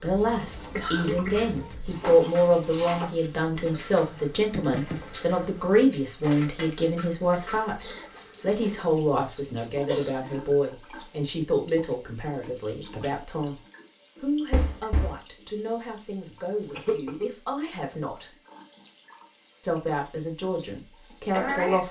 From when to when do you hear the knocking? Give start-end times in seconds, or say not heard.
4.3-5.8, 14.5-15.2.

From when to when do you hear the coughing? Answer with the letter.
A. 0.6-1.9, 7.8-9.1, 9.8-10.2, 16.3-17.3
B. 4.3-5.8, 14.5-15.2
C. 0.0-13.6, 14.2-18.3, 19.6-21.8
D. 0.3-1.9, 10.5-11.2
A.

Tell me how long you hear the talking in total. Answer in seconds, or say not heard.
20 s.